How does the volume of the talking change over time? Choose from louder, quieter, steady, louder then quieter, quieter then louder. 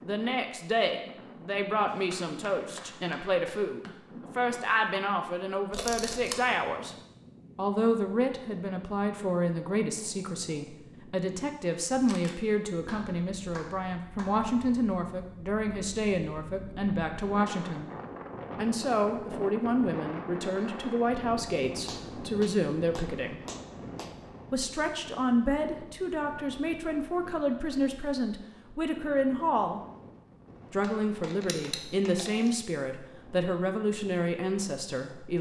steady.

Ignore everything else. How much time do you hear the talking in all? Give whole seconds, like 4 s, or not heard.
32 s.